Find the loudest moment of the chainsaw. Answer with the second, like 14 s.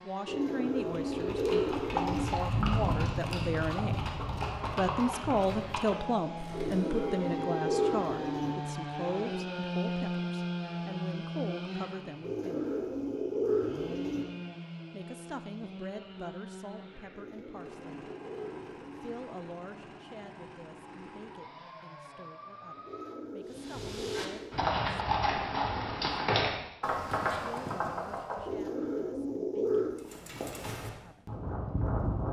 10 s.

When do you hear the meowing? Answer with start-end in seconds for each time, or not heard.
not heard.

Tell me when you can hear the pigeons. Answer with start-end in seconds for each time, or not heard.
0.2-2.3, 6.5-8.6, 12.2-14.2, 17.1-19.1, 22.9-24.6, 28.4-30.1.